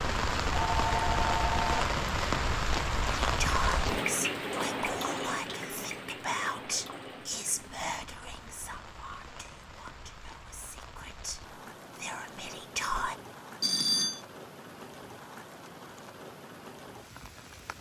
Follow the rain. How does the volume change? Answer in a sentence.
The volume of the rain goes down.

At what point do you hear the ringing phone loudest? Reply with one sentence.
The loudest moment of the ringing phone is at 14 seconds.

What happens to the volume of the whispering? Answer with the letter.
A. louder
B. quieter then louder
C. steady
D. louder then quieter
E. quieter
B.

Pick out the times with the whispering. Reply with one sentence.
You can hear the whispering from 3.2 to 13.2 s.